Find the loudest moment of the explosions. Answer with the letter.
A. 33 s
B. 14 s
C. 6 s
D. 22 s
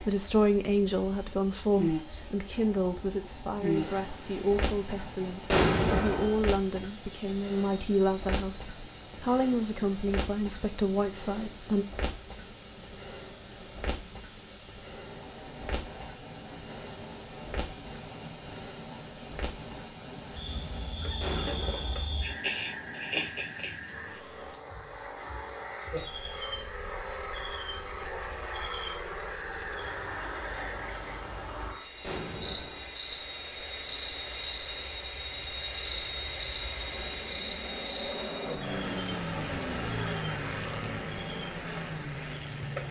C.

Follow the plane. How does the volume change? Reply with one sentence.
The loudness of the plane goes up.